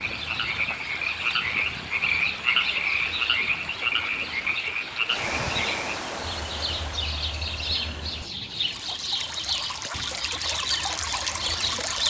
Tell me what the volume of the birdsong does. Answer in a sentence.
The volume of the birdsong goes up.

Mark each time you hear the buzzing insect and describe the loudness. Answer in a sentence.
The buzzing insect can't be heard in this clip.